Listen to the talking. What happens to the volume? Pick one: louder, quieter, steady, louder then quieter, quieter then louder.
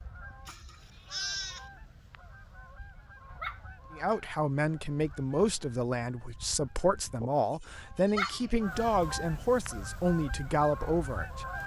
steady.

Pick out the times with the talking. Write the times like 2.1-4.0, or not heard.
4.0-11.4.